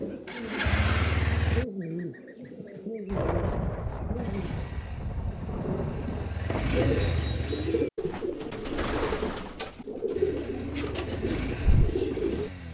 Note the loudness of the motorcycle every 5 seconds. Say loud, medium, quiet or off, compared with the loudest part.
loud, medium, medium.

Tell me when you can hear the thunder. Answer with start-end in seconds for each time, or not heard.
3.0-7.0.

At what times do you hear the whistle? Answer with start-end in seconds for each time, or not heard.
7.0-7.8.